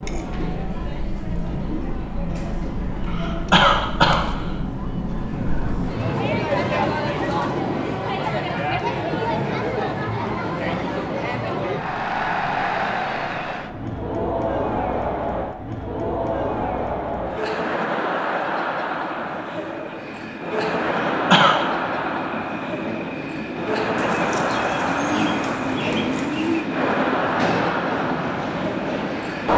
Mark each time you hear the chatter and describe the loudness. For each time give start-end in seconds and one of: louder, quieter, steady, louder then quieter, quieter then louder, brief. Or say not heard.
0.0-29.5 louder.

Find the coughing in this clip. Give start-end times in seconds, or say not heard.
3.0-4.5, 20.9-21.6.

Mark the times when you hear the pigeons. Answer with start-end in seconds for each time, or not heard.
5.3-7.7, 23.9-26.6.